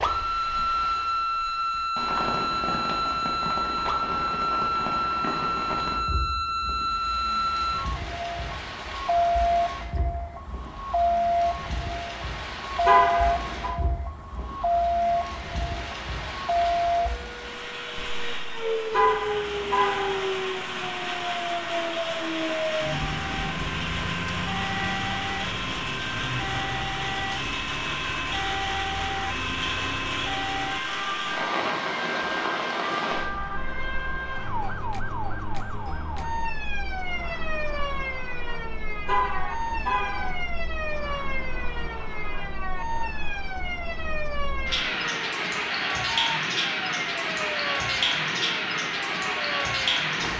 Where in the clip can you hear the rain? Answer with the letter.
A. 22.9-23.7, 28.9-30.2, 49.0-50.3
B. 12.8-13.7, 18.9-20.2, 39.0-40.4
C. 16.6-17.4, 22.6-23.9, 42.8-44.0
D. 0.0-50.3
D.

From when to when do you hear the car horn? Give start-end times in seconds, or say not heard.
12.8-13.7, 18.9-20.2, 39.0-40.4.